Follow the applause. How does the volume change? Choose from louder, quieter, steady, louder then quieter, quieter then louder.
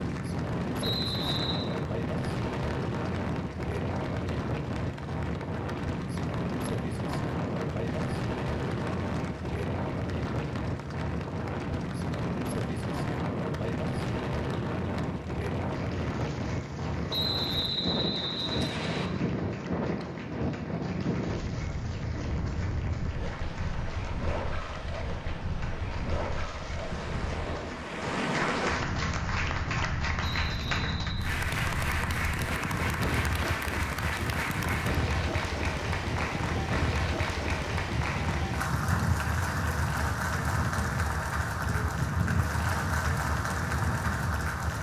louder.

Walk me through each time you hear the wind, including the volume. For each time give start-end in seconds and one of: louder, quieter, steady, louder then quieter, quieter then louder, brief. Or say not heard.
0.0-44.7 steady.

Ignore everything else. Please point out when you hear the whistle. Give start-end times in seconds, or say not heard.
0.8-1.6, 17.1-19.1, 30.2-31.4.